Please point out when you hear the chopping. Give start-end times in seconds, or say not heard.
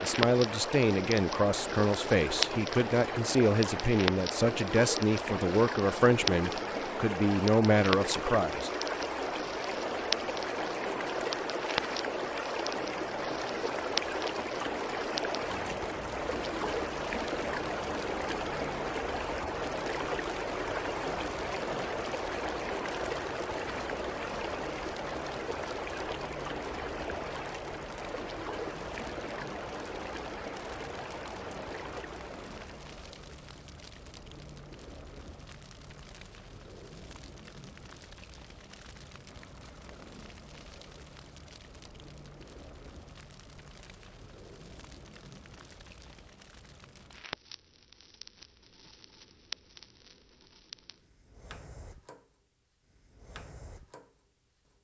not heard.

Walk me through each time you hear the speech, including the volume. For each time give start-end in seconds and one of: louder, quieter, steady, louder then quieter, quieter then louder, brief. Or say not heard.
0.0-8.7 steady.